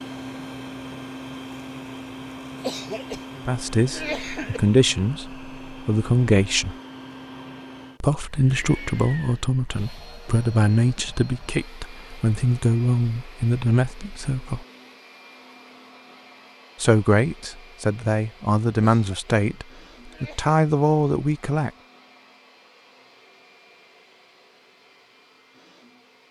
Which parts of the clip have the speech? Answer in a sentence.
The speech can be heard from 3.5 to 6.8 s, from 8.0 to 14.7 s and from 16.8 to 21.7 s.